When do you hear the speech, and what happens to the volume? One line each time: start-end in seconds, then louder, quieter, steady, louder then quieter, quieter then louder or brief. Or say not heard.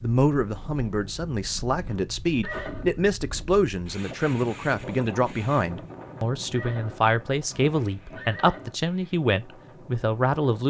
0.0-10.6 steady.